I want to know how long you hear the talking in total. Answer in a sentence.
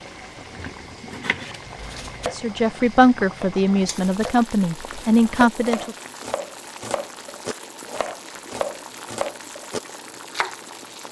The talking can be heard for 4 seconds in total.